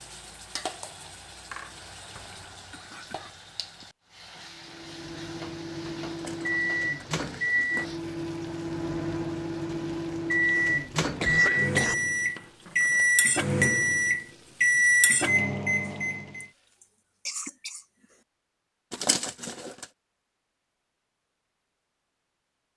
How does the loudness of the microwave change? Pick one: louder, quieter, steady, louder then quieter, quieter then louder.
louder.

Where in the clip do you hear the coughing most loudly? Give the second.
11 s.